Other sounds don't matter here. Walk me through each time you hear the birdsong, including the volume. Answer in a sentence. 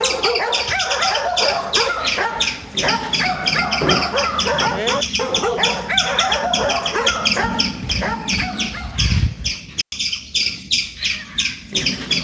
You can hear the birdsong from 0.0 to 12.2 s, at a steady volume.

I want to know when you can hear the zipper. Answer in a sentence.
The zipper can't be heard in this clip.